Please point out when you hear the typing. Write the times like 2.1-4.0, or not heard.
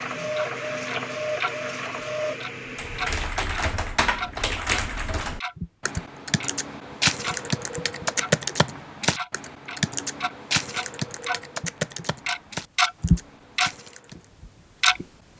2.8-14.2.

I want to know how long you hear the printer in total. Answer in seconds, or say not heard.
3 s.